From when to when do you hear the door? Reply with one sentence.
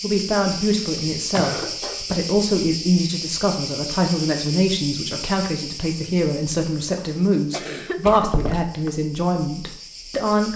The door can be heard from 0.9 to 1.6 s and from 8.1 to 8.9 s.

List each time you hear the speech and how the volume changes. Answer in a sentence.
The speech can be heard from 0.0 to 10.5 s, at a steady volume.